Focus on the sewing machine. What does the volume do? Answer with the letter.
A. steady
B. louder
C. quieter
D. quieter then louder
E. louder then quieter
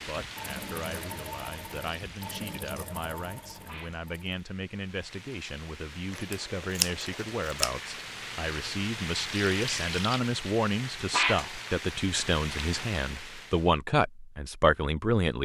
C.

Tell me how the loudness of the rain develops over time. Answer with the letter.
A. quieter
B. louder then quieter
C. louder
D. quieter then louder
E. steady
D.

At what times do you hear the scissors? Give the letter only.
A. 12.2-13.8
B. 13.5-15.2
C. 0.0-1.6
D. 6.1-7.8
D.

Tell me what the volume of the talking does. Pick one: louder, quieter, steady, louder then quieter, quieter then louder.
louder.